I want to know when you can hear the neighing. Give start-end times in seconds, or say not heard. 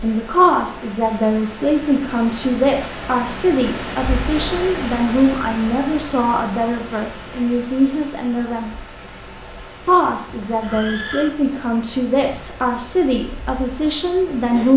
10.2-11.3.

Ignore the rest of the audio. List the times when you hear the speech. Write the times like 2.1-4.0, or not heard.
0.0-8.7, 9.8-14.7.